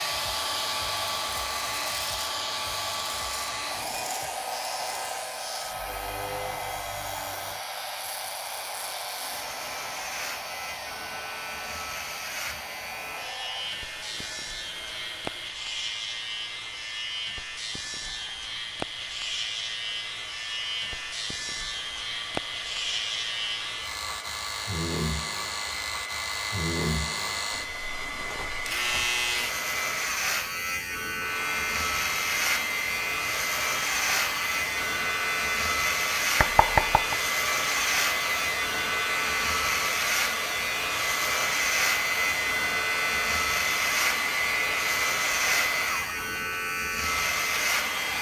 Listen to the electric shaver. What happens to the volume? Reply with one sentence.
The loudness of the electric shaver goes up.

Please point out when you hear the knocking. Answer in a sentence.
You can hear the knocking from 36.4 to 37.1 s.